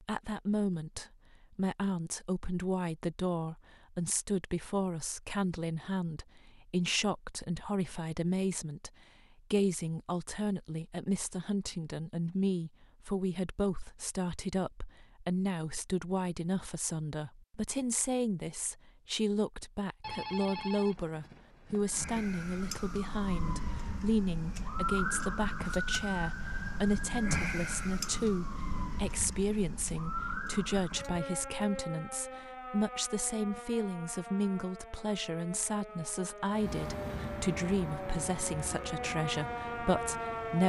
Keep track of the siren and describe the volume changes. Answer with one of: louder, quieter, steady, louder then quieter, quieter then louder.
quieter then louder.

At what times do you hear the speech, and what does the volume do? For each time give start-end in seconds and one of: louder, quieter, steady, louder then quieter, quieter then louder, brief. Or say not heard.
0.0-8.9 steady
9.5-40.6 steady.